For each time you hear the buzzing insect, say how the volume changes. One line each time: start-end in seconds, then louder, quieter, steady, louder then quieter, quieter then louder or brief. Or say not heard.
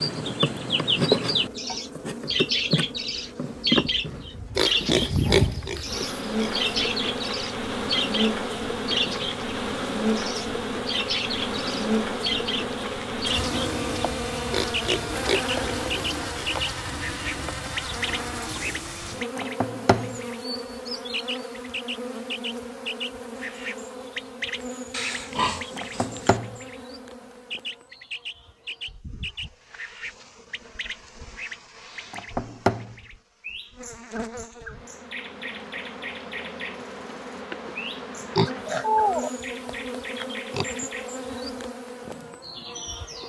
0.0-43.2 quieter then louder.